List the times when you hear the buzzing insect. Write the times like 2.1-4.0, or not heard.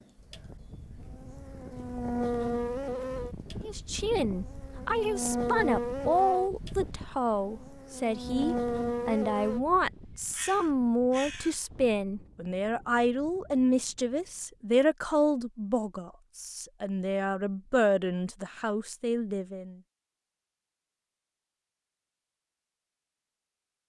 0.0-9.6.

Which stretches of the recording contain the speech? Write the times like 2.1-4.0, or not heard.
3.6-19.8.